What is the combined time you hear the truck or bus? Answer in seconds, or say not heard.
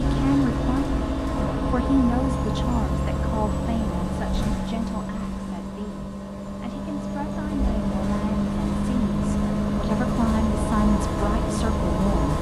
12 s.